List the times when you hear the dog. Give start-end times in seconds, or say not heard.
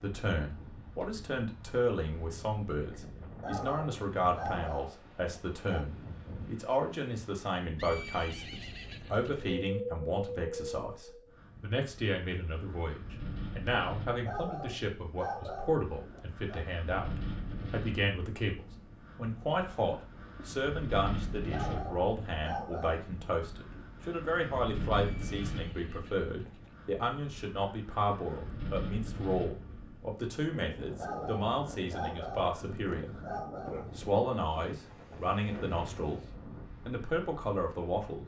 3.4-5.8, 14.2-16.6, 21.5-23.1, 30.9-33.9.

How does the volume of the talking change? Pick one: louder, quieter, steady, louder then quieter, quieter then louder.
steady.